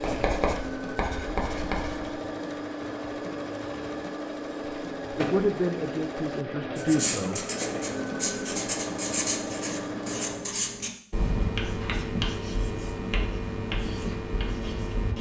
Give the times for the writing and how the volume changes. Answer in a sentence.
The writing can be heard briefly from 0.0 to 2.1 s; and from 6.8 to 15.1 s, at a steady volume.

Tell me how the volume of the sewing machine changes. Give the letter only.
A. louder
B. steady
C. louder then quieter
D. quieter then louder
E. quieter
B.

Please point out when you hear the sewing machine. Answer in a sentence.
You can hear the sewing machine from 0.0 to 10.6 s.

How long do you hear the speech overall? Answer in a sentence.
You can hear the speech for 2 seconds altogether.